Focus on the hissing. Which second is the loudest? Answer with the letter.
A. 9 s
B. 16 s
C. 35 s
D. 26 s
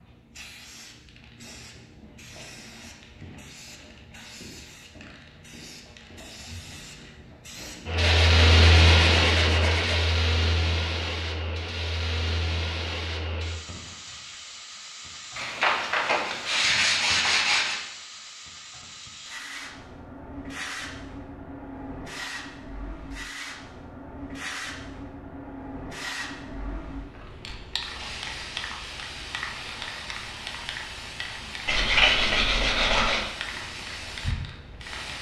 A.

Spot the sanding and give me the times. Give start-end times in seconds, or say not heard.
8.0-10.1, 15.3-17.9, 31.6-33.2.